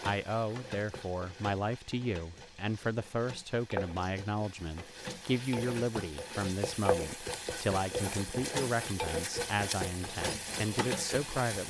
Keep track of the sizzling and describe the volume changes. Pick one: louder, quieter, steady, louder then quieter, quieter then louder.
louder.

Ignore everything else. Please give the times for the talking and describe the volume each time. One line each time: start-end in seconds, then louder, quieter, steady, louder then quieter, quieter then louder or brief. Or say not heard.
0.0-11.6 steady.